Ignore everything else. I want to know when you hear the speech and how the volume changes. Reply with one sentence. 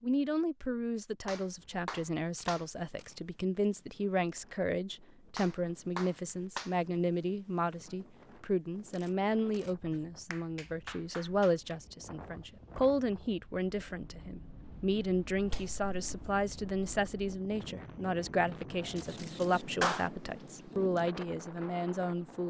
The speech can be heard from 0.0 to 22.4 s, at a steady volume.